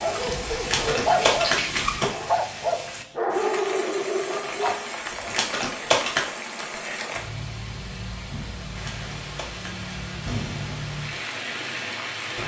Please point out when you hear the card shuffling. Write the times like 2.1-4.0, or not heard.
0.6-2.1, 5.2-6.2, 8.8-9.9.